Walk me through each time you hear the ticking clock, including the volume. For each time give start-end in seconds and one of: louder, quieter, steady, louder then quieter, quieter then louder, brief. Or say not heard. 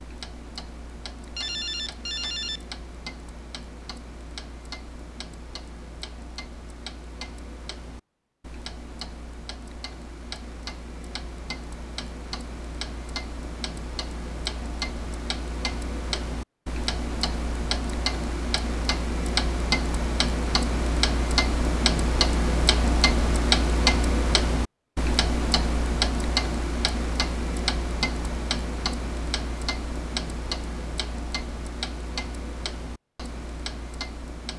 0.0-34.5 louder then quieter.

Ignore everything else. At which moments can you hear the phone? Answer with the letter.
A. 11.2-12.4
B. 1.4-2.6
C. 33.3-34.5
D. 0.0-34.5
B.